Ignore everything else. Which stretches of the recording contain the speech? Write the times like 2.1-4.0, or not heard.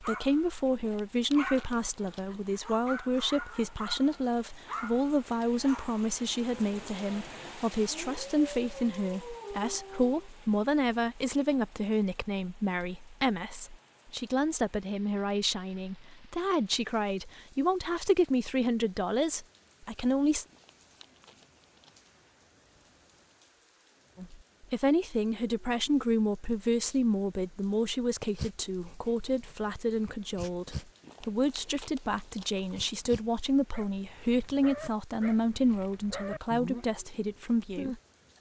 0.0-20.4, 24.1-38.3.